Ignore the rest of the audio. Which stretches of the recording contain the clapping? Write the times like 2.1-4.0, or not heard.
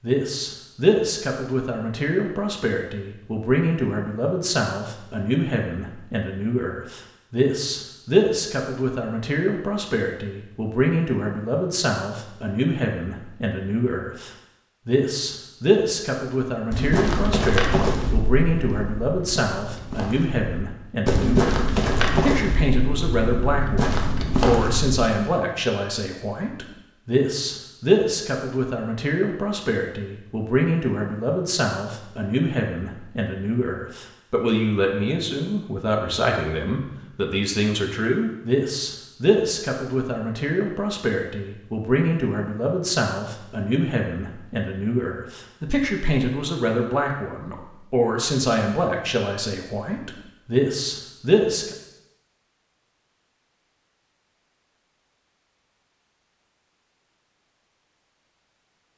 not heard.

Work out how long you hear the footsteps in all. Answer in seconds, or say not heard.
8 s.